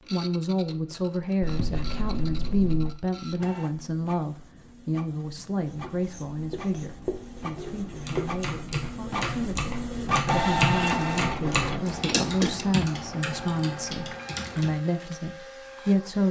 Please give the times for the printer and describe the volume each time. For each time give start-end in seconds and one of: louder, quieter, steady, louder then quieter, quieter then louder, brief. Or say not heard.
0.0-16.2 louder then quieter.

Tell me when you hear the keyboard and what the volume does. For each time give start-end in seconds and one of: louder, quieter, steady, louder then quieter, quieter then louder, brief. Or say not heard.
7.5-14.8 louder then quieter.